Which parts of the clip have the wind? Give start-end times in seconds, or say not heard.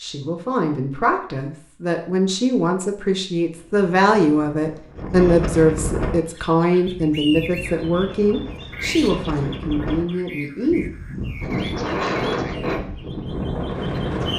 3.5-14.3.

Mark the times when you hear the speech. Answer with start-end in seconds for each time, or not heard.
0.0-10.8.